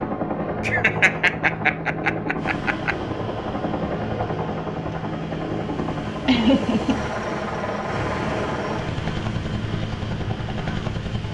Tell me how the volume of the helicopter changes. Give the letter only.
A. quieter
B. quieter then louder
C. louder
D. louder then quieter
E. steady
E.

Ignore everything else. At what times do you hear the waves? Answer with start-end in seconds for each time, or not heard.
2.4-11.3.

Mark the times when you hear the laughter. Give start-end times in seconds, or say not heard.
0.7-3.0, 6.2-7.0.